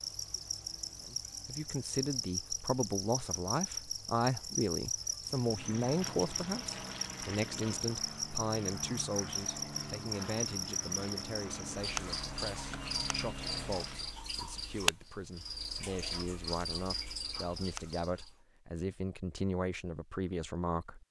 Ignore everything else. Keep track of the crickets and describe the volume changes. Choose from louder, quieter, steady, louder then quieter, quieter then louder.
steady.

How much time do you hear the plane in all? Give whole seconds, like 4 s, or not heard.
9 s.